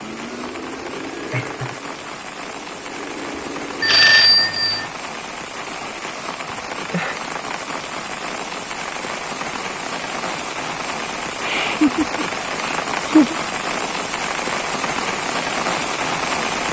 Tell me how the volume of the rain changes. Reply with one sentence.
The volume of the rain goes up.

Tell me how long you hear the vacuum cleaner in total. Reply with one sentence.
The vacuum cleaner can be heard for 4 seconds in total.